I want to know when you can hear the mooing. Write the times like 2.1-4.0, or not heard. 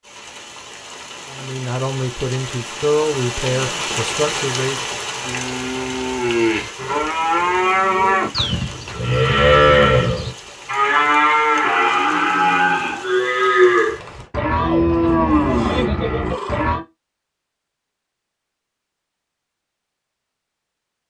5.2-16.8.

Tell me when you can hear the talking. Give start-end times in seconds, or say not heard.
1.2-5.0.